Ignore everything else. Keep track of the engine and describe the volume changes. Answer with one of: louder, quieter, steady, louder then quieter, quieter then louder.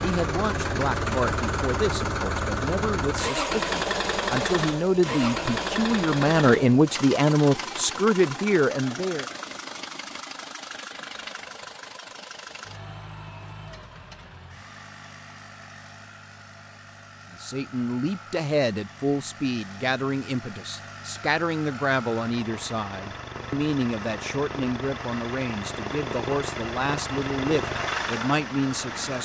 quieter then louder.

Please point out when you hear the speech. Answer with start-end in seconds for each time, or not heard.
0.0-9.2, 17.3-29.2.